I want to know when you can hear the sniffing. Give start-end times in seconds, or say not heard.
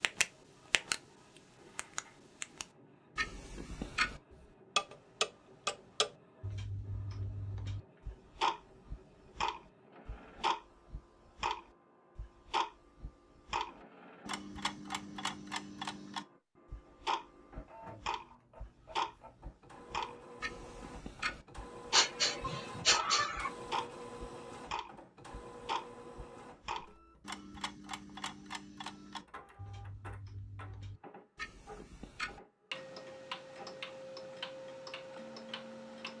21.9-23.5.